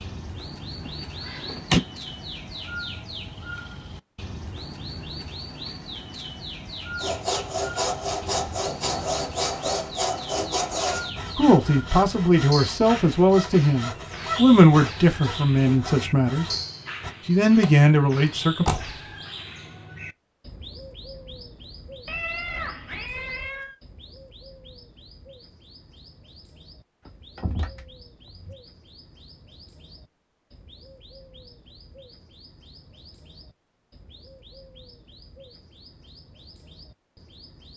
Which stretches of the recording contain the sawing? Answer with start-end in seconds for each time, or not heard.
7.0-17.1.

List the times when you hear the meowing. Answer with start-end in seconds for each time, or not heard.
22.1-23.8.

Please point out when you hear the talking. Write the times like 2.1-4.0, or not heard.
11.3-16.5, 17.2-18.6.